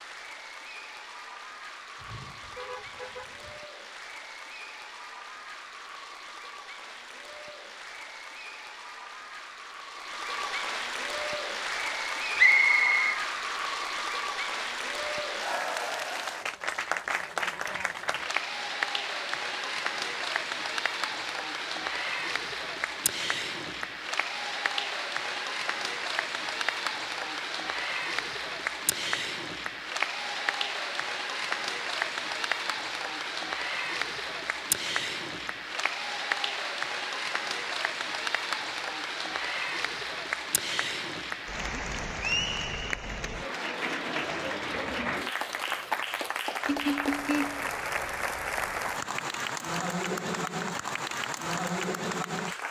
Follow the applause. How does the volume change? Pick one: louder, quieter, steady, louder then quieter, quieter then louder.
louder.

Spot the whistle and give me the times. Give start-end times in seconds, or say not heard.
12.3-13.2.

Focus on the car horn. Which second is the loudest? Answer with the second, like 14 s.
47 s.